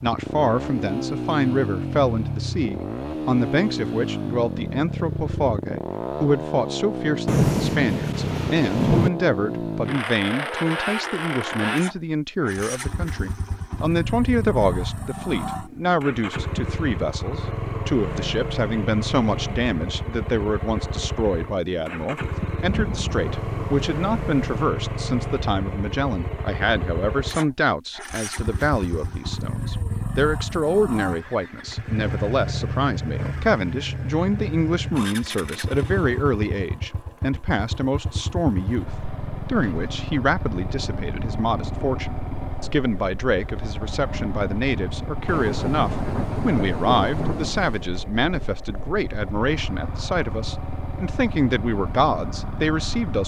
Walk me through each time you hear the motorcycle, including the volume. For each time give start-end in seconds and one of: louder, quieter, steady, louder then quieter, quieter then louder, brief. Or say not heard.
0.0-53.2 quieter.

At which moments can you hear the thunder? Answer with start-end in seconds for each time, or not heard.
7.2-9.1, 22.6-24.5, 45.2-47.9.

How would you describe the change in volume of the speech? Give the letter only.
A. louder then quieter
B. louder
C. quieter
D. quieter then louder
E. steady
E.